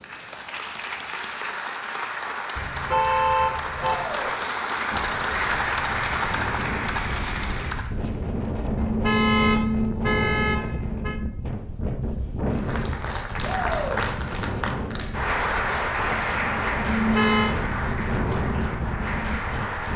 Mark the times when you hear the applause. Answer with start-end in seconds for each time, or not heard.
0.0-8.0, 12.5-19.9.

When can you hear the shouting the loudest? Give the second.
14 s.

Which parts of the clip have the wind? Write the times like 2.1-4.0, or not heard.
4.9-19.9.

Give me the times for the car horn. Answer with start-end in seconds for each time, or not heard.
2.5-4.0, 8.8-11.2, 16.9-17.6.